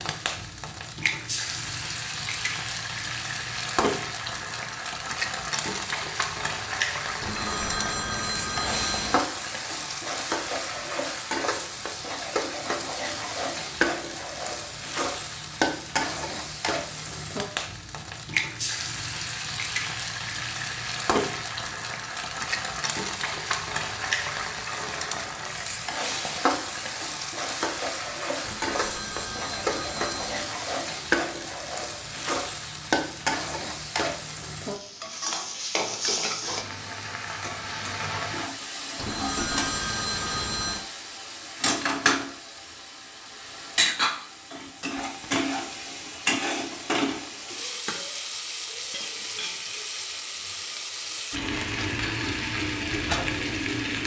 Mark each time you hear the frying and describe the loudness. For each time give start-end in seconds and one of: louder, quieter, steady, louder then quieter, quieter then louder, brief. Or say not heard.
0.0-54.0 steady.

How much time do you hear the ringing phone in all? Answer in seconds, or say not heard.
6 s.